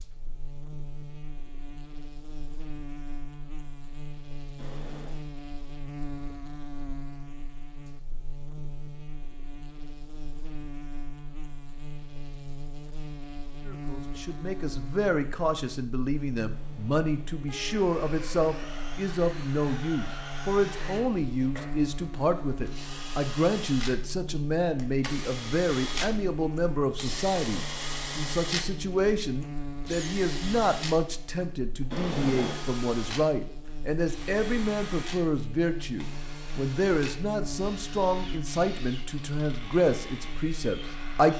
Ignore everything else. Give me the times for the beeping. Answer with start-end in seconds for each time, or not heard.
4.5-5.2, 16.5-17.9, 31.9-32.6.